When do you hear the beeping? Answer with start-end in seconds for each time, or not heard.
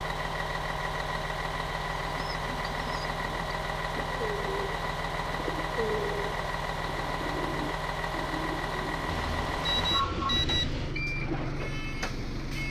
9.1-10.9.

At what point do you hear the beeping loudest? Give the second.
10 s.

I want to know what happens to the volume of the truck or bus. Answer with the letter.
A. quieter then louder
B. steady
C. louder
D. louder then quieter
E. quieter
B.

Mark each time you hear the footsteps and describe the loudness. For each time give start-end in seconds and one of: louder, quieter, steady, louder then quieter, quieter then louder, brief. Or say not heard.
not heard.